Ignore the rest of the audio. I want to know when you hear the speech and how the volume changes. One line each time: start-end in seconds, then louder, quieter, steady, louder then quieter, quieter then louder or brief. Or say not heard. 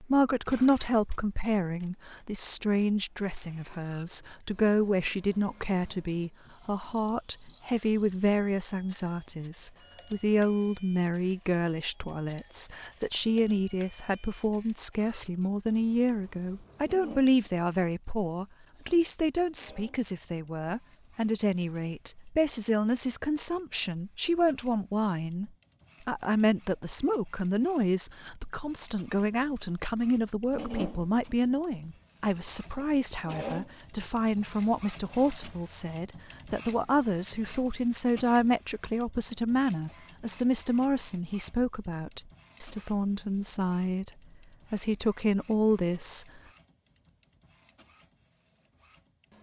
0.0-44.1 steady
44.7-46.4 brief.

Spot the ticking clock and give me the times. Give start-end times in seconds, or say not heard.
not heard.